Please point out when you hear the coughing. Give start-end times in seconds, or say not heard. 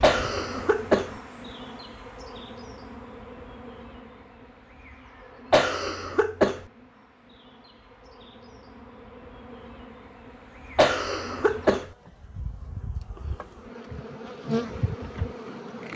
0.0-1.1, 5.5-6.7, 10.8-11.9.